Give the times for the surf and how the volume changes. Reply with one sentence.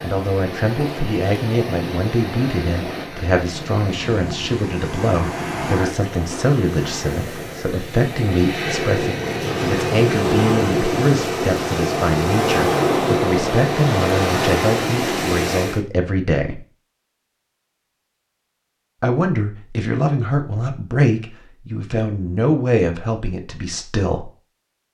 You can hear the surf from 0.0 to 15.8 s, getting louder.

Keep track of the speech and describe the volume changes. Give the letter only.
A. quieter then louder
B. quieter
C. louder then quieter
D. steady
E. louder
D.